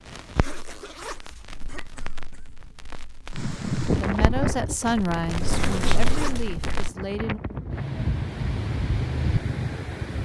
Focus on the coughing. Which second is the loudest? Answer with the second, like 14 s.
6 s.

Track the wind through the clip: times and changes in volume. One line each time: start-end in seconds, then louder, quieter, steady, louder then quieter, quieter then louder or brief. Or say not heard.
3.3-10.2 quieter then louder.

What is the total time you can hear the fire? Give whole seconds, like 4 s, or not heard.
7 s.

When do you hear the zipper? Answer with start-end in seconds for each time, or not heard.
0.1-1.6, 5.4-6.5.